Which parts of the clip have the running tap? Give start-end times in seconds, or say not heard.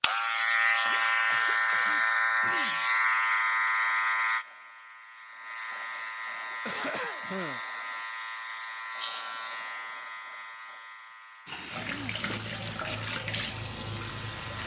11.4-14.6.